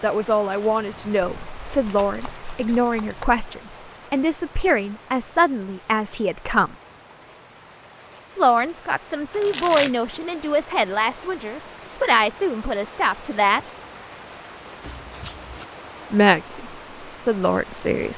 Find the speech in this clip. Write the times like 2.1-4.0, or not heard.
0.0-6.8, 8.3-13.8, 16.1-18.1.